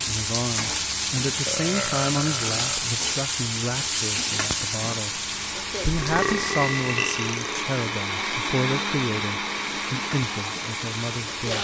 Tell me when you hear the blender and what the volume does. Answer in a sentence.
The blender can be heard from 0.0 to 11.5 s, getting louder.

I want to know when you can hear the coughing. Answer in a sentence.
The coughing can't be heard in this clip.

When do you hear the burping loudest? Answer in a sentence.
The volume of the burping peaks at 6 seconds.